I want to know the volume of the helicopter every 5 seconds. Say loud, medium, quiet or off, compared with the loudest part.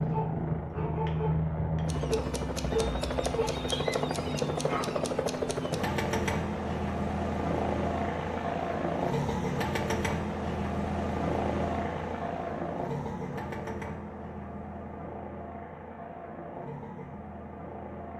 loud, loud, loud, medium.